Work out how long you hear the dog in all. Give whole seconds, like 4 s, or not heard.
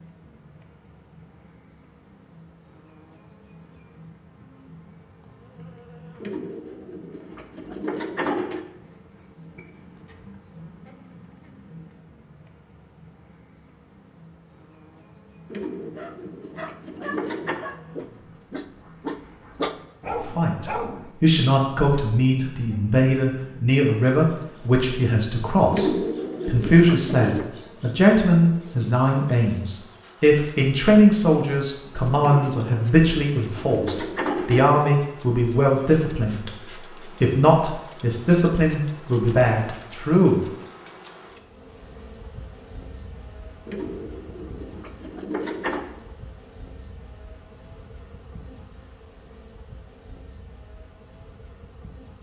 5 s.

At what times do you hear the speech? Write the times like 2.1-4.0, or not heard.
20.2-40.5.